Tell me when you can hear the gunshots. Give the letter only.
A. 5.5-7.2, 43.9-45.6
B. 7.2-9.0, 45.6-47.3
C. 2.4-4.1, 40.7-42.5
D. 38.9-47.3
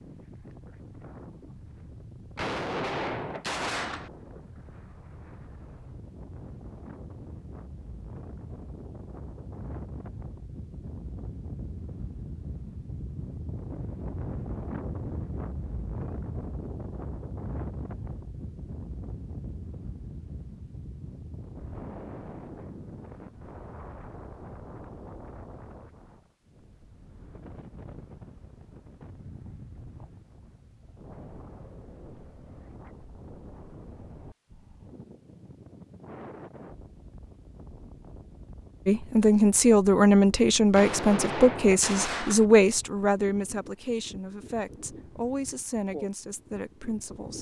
C.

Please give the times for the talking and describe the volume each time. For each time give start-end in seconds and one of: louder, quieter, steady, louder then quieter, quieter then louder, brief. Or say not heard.
38.9-47.3 quieter.